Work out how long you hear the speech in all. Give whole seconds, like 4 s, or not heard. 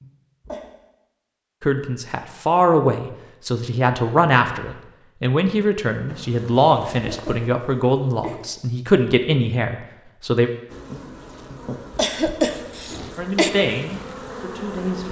11 s.